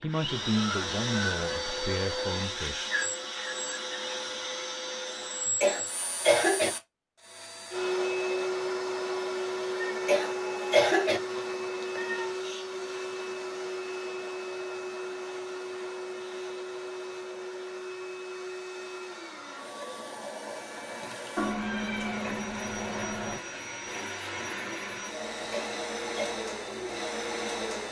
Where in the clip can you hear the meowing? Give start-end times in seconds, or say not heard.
9.7-12.4, 21.4-23.4.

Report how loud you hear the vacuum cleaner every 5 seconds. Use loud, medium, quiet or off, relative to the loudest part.
loud, loud, loud, medium, medium, loud.